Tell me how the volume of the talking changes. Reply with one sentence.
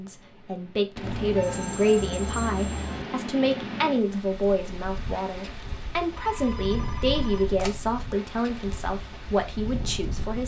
The volume of the talking stays about the same.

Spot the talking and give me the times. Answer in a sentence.
The talking can be heard from 0.0 to 10.4 s.